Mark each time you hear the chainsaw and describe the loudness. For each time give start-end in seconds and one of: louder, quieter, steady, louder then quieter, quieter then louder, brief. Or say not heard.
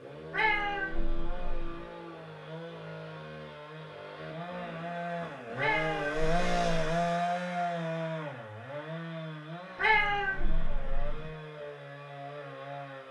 0.0-13.0 louder then quieter.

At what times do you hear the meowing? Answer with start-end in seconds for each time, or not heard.
0.3-1.9, 5.5-7.0, 9.8-11.3.